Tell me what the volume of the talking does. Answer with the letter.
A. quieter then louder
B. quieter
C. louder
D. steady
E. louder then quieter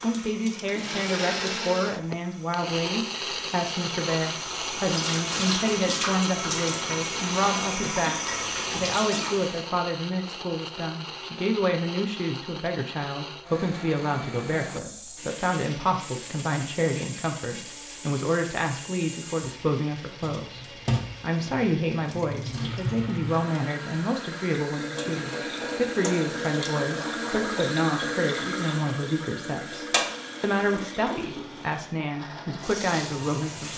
D.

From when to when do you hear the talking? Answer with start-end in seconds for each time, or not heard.
0.0-33.7.